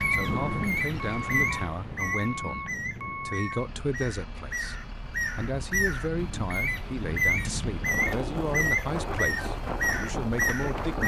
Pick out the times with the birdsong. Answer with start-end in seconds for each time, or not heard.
0.0-11.0.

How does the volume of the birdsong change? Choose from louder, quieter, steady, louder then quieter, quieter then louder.
quieter then louder.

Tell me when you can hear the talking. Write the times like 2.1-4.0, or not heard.
0.0-11.0.